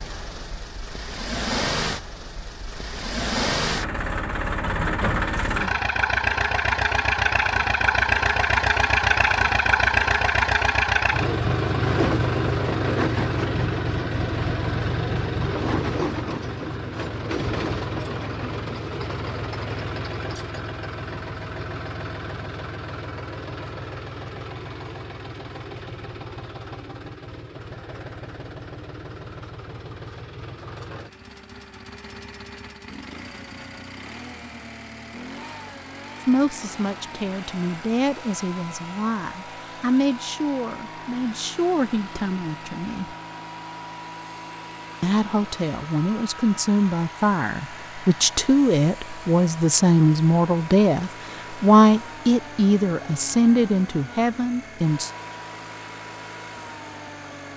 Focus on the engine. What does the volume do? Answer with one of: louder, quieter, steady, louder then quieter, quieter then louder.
quieter.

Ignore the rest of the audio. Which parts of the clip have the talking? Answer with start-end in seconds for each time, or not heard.
36.2-43.1, 45.0-55.1.